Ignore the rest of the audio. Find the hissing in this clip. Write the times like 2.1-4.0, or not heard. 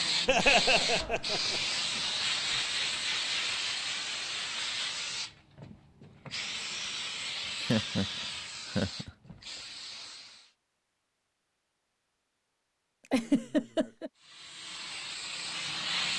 0.0-10.5, 14.2-16.1.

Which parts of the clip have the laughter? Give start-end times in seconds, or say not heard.
0.2-1.6, 7.6-9.1, 13.1-14.1.